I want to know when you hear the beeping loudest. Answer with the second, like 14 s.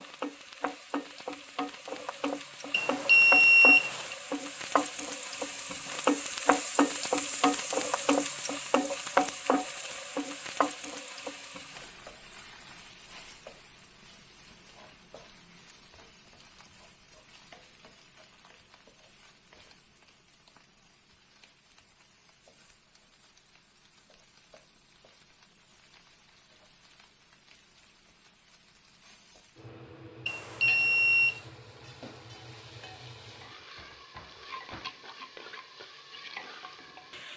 4 s.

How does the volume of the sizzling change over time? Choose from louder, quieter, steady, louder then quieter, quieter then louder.
quieter then louder.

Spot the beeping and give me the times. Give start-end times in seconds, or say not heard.
2.7-4.2, 30.2-31.4.